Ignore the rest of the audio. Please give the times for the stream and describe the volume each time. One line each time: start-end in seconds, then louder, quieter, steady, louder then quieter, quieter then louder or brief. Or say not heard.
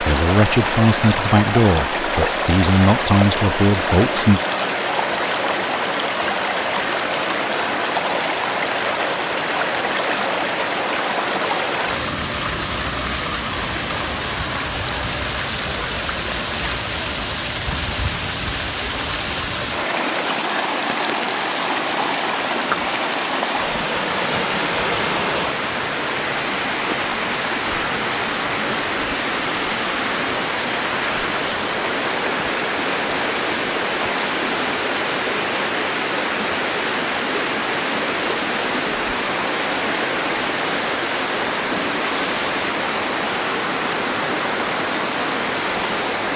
0.0-46.3 steady.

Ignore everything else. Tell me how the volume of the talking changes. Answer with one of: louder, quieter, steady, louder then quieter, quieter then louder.
quieter then louder.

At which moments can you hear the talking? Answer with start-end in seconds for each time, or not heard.
0.0-4.4.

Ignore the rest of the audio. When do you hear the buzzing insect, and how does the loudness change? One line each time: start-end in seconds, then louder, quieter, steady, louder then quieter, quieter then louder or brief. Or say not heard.
not heard.